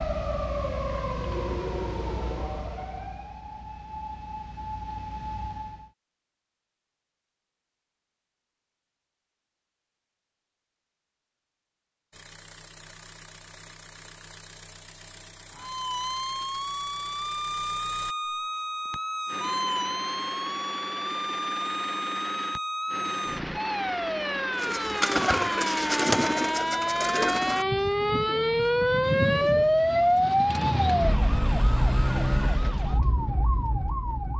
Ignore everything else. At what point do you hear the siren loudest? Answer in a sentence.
The volume of the siren peaks at 30 seconds.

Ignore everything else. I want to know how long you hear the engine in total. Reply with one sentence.
You can hear the engine for 14 seconds altogether.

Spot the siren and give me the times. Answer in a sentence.
You can hear the siren from 0.0 to 5.9 s and from 15.5 to 34.3 s.